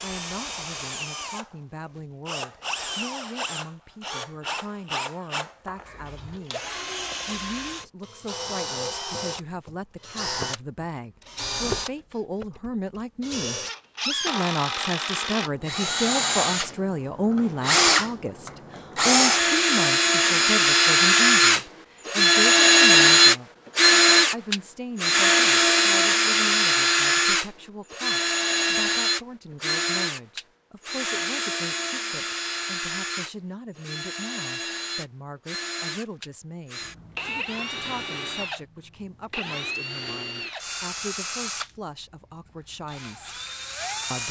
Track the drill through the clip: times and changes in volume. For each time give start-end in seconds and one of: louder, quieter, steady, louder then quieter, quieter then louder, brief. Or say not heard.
0.0-44.2 louder then quieter.